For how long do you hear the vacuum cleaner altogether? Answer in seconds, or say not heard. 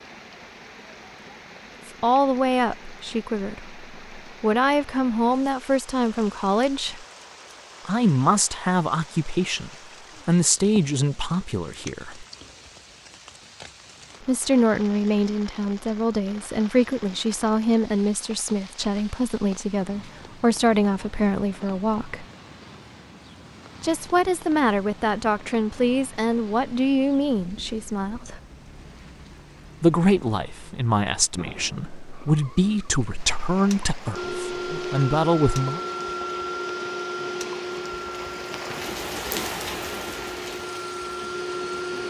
8 s.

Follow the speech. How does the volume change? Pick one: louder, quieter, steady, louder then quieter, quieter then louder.
steady.